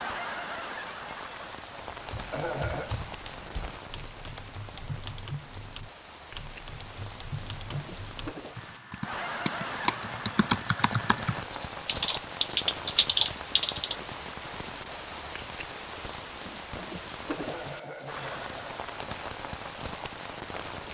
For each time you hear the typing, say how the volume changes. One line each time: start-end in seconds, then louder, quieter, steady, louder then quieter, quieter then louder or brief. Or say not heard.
1.9-13.9 louder.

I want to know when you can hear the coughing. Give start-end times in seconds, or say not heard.
2.3-2.9, 17.4-18.8.